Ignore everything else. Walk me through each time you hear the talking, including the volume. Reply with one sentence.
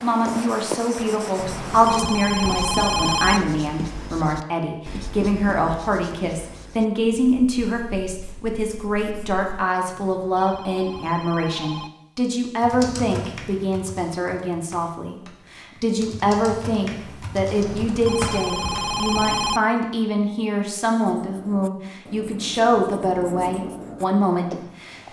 You can hear the talking from 0.0 to 24.9 s, at a steady volume.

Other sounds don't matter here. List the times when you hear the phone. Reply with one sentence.
You can hear the phone from 1.4 to 3.4 s, from 9.8 to 11.9 s and from 17.6 to 19.6 s.